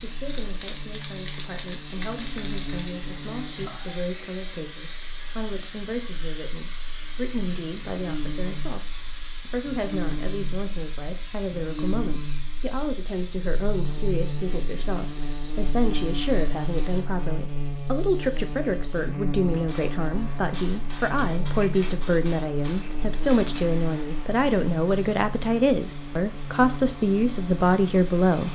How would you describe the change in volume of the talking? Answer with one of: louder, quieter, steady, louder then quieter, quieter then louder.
louder.